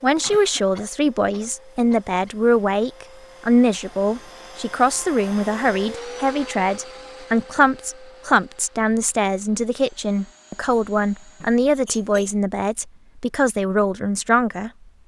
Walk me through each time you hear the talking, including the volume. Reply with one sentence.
You can hear the talking from 0.0 to 14.7 s, at a steady volume.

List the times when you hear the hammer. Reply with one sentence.
You can't hear the hammer here.